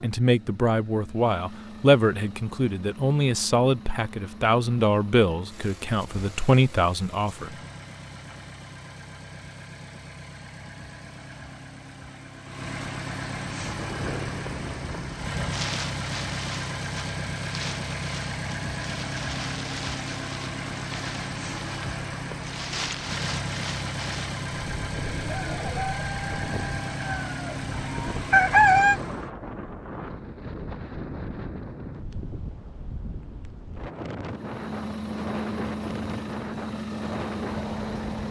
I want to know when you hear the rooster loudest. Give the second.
29 s.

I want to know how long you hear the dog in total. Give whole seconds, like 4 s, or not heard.
not heard.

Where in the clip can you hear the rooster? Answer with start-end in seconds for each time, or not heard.
24.9-29.0.